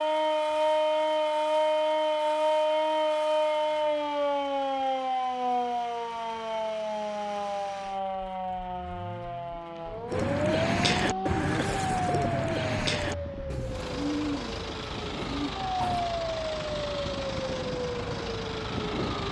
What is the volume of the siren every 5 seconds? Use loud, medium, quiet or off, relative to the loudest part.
loud, medium, medium, medium.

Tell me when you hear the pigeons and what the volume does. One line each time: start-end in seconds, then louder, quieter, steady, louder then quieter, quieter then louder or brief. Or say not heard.
10.1-16.1 quieter.